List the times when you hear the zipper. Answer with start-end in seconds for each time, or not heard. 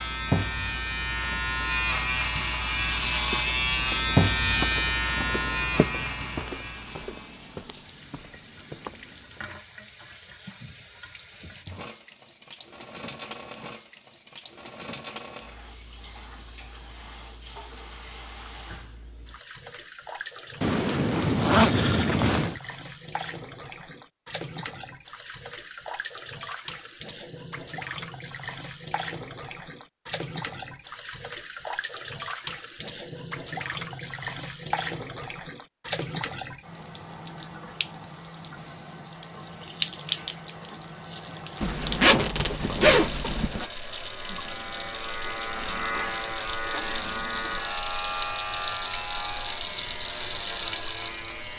20.6-22.6, 41.6-43.6.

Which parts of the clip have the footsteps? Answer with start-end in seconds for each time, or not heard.
3.2-9.4.